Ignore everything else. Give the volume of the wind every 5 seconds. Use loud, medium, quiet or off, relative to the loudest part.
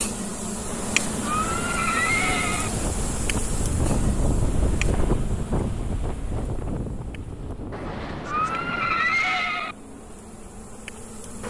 loud, loud, off.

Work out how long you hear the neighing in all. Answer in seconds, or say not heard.
4 s.